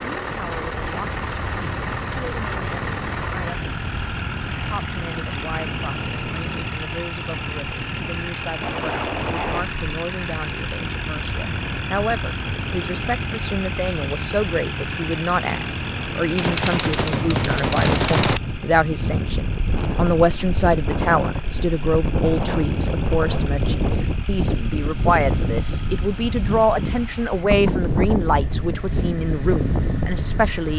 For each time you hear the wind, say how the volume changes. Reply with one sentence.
The wind can be heard from 0.0 to 30.7 s, getting louder.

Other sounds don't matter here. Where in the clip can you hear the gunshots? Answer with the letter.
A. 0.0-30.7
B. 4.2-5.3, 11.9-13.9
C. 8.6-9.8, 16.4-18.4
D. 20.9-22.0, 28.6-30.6
C.